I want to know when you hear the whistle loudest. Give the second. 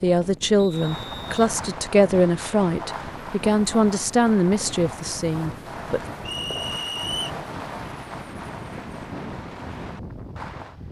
7 s.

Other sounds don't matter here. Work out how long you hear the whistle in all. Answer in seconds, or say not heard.
2 s.